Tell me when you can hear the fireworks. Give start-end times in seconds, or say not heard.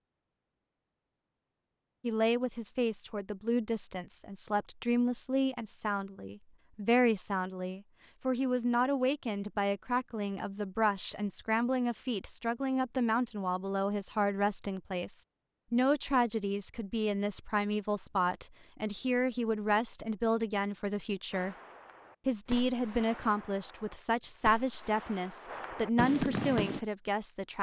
21.3-26.8.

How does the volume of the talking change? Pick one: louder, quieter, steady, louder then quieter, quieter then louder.
steady.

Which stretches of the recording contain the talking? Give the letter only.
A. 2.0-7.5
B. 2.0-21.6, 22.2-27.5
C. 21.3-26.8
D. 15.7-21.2
B.